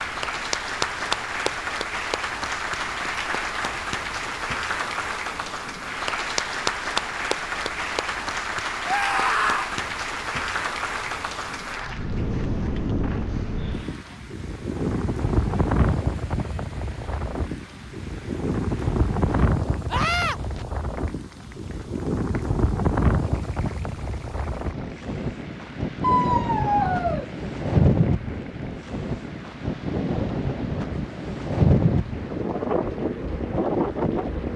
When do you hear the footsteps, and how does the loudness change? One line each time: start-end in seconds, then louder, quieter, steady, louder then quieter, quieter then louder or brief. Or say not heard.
not heard.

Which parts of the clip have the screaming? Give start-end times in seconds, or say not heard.
8.8-9.7, 19.9-20.4, 26.0-27.2.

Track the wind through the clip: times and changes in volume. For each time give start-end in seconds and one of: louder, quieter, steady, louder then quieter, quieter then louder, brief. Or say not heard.
0.0-34.5 louder.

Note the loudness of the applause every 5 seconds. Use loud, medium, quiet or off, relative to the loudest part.
loud, loud, medium, quiet, quiet, quiet, quiet.